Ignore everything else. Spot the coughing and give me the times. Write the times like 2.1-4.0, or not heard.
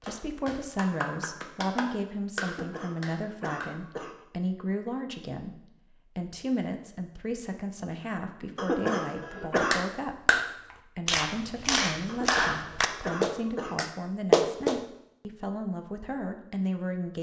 2.5-4.2, 8.6-9.8, 12.1-13.8.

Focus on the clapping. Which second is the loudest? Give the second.
14 s.